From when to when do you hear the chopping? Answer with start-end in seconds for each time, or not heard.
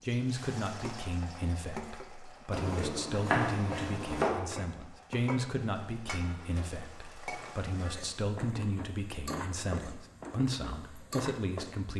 2.5-4.3.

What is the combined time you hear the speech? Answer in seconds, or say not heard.
12 s.